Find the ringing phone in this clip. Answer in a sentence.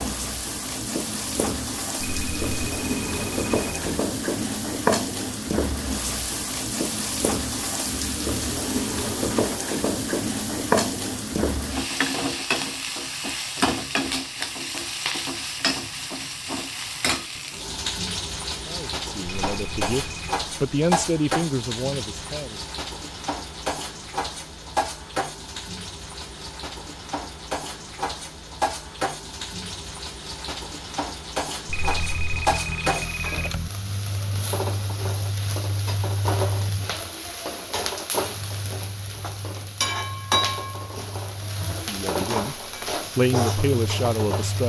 The ringing phone can be heard from 2.0 to 4.0 s, from 19.5 to 20.4 s and from 31.6 to 33.7 s.